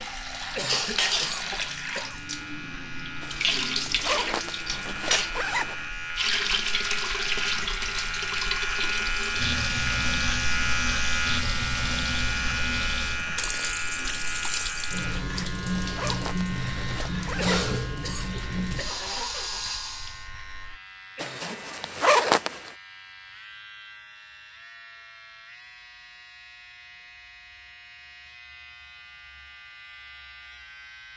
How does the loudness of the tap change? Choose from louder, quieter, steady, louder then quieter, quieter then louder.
steady.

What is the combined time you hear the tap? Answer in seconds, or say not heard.
20 s.